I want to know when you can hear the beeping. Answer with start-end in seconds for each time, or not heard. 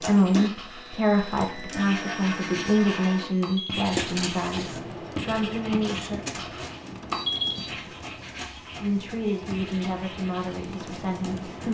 3.4-3.9, 7.1-7.8.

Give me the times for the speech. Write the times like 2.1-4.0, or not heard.
0.1-6.2, 8.8-11.6.